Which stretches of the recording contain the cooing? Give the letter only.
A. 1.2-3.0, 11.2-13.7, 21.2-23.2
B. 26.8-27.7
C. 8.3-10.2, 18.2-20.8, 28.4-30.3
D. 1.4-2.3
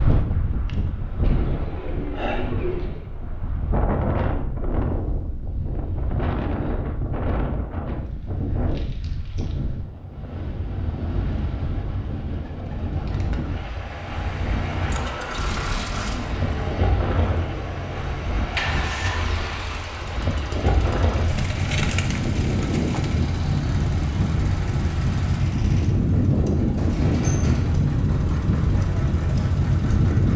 A.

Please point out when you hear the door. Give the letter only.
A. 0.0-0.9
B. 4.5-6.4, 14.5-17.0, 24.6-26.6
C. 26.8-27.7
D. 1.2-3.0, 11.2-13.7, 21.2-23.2
C.